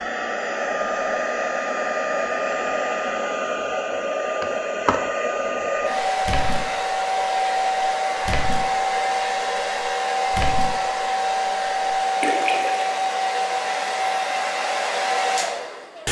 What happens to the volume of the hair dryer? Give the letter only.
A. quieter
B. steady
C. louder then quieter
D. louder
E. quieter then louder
B.